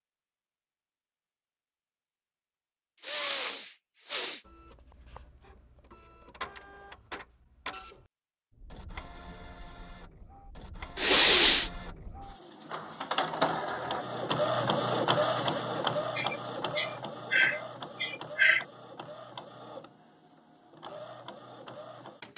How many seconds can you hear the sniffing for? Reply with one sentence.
You can hear the sniffing for 5 seconds altogether.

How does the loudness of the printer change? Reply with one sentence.
The volume of the printer goes up, then down.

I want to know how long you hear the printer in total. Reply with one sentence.
You can hear the printer for 18 seconds altogether.